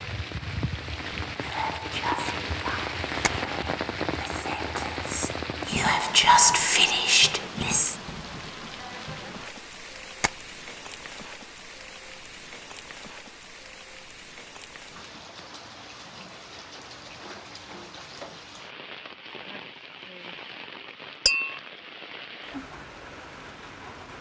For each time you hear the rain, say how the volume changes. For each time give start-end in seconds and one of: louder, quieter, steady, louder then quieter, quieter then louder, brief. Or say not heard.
0.0-24.1 quieter.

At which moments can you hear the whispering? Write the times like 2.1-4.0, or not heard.
1.4-8.0.